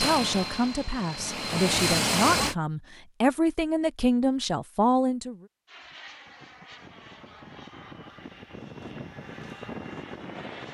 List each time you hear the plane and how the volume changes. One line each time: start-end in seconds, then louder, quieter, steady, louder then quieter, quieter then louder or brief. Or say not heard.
0.0-2.5 brief
5.7-10.6 louder.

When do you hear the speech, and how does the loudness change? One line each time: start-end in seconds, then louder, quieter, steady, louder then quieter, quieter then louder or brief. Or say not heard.
0.0-5.3 louder.